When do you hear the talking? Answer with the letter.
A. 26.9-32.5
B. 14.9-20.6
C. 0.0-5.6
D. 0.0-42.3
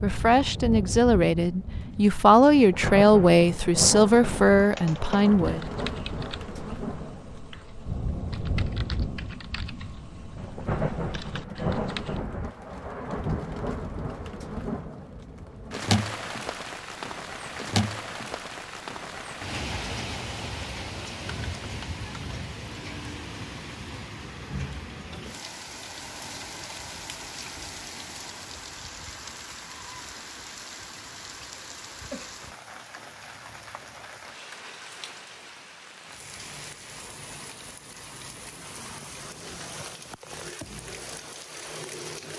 C.